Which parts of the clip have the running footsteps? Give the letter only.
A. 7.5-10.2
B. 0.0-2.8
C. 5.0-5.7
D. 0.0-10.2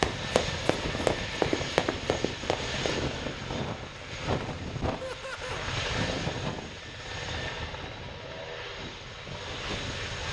B.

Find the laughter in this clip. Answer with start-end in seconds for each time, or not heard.
5.0-5.7.